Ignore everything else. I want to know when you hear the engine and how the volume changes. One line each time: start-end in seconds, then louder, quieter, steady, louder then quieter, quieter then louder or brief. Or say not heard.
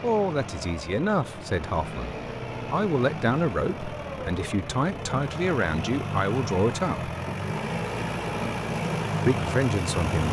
0.0-10.2 louder.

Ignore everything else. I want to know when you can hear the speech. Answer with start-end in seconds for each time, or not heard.
0.0-7.2, 9.2-10.2.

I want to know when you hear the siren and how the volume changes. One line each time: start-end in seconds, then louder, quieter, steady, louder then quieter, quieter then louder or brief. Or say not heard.
not heard.